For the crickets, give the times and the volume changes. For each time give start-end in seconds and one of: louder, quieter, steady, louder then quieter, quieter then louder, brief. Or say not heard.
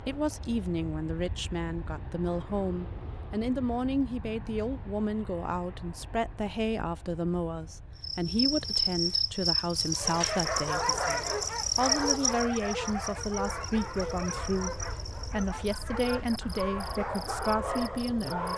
8.0-18.5 quieter.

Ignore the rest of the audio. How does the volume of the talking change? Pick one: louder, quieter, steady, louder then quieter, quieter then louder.
steady.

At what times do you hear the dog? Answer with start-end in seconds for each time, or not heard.
9.9-18.5.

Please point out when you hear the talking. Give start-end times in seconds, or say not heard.
0.0-18.5.